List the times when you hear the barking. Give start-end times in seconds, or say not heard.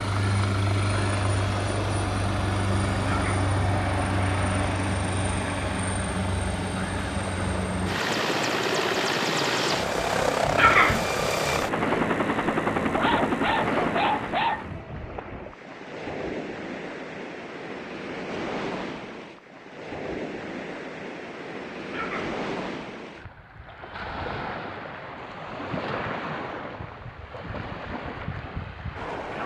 12.9-14.7.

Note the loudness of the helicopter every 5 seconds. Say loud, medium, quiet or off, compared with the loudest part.
loud, loud, loud, off, off, off.